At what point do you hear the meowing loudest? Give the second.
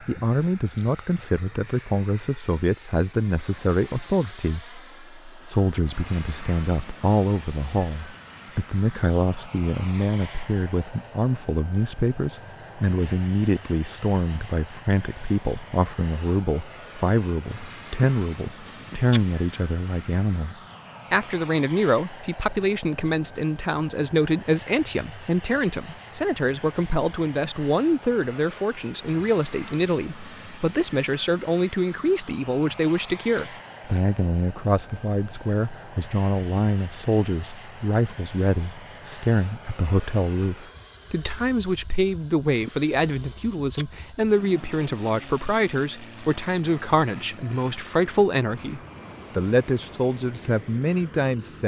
19 s.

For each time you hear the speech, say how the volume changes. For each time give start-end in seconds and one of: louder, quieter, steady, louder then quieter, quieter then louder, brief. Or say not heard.
0.0-51.6 steady.